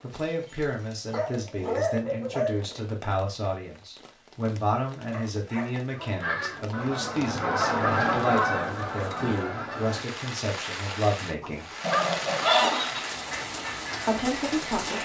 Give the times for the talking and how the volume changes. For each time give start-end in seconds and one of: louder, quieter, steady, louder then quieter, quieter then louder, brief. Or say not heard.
0.0-11.7 steady
14.1-15.0 brief.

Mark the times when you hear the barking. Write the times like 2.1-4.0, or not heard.
0.2-2.8, 5.1-6.6, 11.4-12.8.